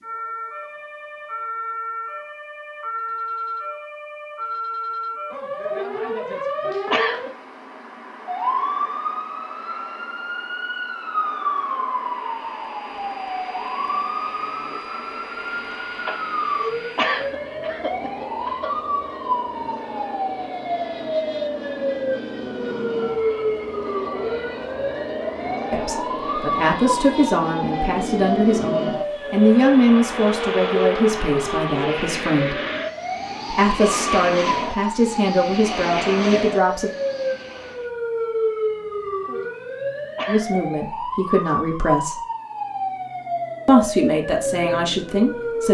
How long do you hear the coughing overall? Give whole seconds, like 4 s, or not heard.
3 s.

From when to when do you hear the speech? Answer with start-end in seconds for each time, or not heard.
25.7-32.5, 33.5-36.9, 40.2-42.2, 43.6-45.6.